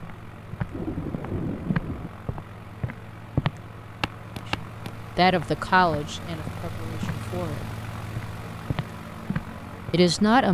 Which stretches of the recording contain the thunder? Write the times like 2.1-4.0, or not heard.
0.7-2.1.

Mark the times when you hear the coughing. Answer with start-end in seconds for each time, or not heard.
not heard.